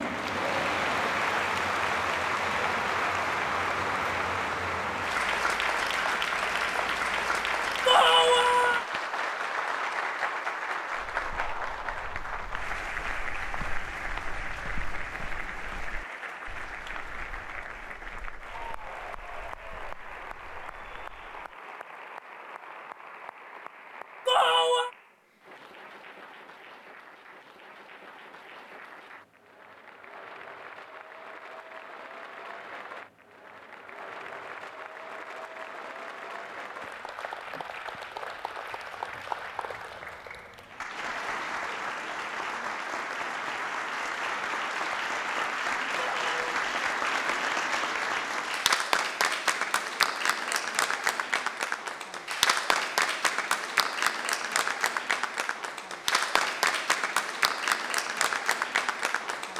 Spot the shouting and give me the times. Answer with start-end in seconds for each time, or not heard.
7.8-8.8, 24.2-24.9, 46.0-46.5.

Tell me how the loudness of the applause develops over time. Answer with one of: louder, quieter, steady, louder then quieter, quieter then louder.
quieter then louder.